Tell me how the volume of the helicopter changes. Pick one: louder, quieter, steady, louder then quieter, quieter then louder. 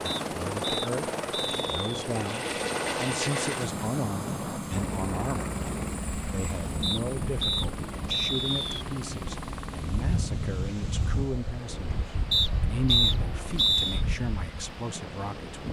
quieter.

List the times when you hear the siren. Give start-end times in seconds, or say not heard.
not heard.